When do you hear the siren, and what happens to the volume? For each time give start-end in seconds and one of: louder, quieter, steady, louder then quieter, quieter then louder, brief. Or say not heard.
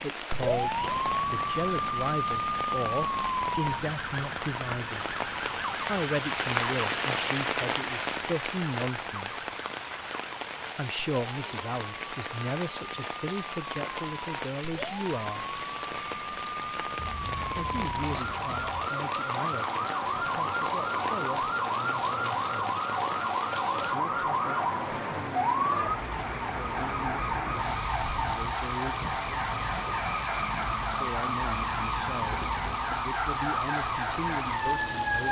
0.3-35.2 quieter then louder.